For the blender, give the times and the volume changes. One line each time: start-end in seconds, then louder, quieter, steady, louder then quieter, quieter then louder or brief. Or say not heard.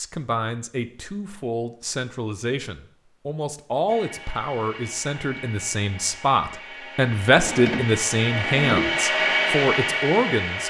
3.9-10.6 louder.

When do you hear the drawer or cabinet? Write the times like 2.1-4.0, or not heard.
7.3-8.9.